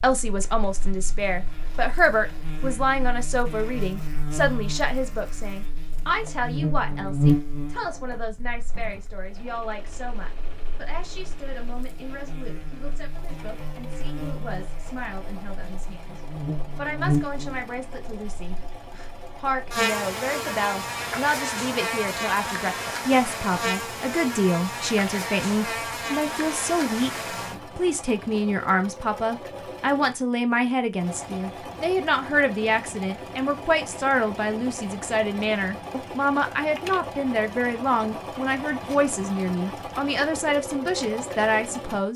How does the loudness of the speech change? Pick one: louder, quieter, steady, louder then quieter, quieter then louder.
quieter then louder.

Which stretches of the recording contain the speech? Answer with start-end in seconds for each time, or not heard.
0.0-27.1, 27.8-42.1.